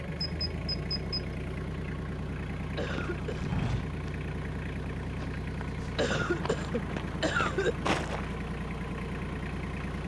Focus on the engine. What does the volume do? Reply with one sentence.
The loudness of the engine stays about the same.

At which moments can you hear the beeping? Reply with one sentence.
You can hear the beeping from 0.2 to 1.2 s.